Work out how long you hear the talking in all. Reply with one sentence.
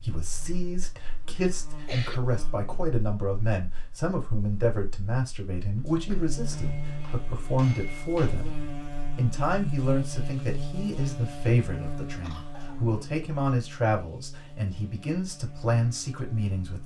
You can hear the talking for 16 seconds altogether.